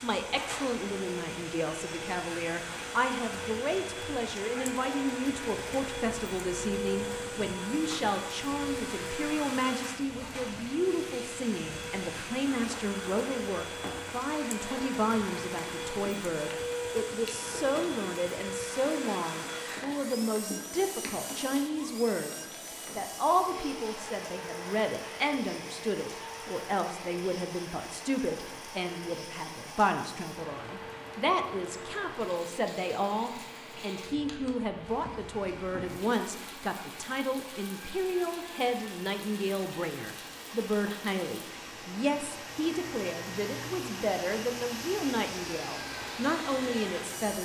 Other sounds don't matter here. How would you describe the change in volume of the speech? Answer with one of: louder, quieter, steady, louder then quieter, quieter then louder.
steady.